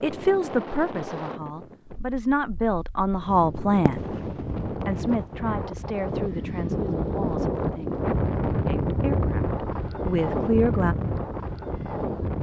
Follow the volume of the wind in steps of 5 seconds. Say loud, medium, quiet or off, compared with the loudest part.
medium, loud, loud.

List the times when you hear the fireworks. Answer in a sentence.
You can hear the fireworks from 3.9 to 5.2 s.